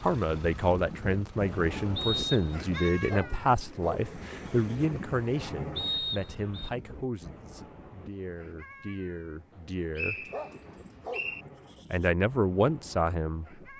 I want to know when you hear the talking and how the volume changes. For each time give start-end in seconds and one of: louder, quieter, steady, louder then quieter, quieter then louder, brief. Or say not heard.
0.0-10.3 quieter
11.9-13.6 brief.